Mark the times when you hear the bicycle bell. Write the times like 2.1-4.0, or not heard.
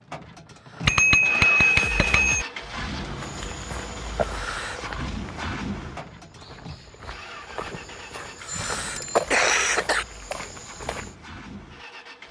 0.8-2.5, 8.4-9.3.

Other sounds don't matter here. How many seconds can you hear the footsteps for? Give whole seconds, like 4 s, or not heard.
8 s.